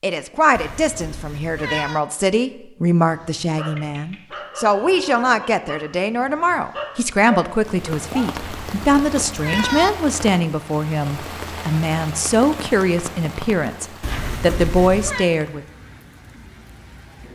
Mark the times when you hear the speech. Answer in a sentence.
The speech can be heard from 0.0 to 15.7 s.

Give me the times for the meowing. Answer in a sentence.
You can hear the meowing from 0.6 to 2.0 s, from 8.3 to 9.9 s and from 14.0 to 15.2 s.